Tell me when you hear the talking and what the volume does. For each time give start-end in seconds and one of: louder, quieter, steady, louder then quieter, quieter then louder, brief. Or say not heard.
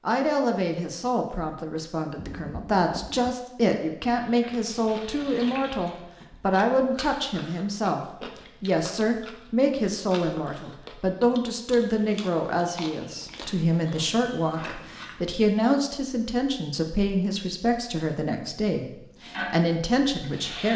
0.1-20.7 steady.